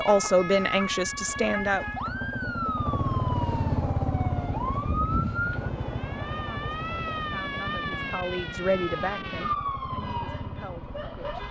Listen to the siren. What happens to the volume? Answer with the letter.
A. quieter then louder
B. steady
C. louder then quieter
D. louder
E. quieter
B.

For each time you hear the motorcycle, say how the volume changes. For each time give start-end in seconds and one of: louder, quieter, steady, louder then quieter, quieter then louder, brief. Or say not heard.
0.0-11.4 louder then quieter.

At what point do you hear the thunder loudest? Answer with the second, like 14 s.
5 s.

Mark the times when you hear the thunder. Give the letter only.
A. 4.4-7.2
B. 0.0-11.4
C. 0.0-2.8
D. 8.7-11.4
A.